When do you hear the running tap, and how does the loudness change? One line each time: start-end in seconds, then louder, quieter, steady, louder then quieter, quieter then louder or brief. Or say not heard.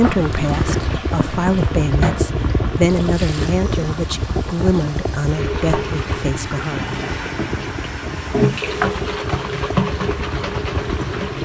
0.0-11.4 quieter then louder.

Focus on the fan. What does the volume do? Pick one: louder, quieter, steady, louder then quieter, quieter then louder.
quieter.